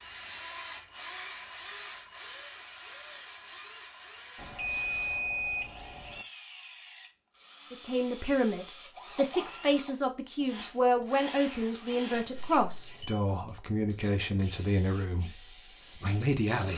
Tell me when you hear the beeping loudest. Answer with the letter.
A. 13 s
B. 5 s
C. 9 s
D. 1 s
B.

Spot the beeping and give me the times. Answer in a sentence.
You can hear the beeping from 4.3 to 6.2 s and from 12.1 to 13.2 s.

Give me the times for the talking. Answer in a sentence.
You can hear the talking from 7.7 to 16.7 s.